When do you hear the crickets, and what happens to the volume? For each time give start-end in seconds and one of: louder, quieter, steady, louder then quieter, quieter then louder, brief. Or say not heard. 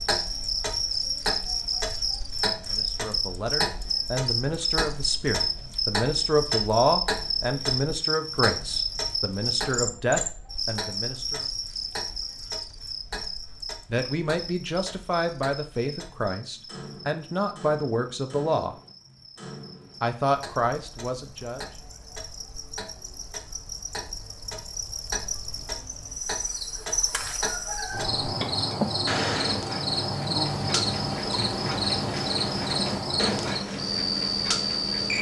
0.0-35.1 quieter then louder.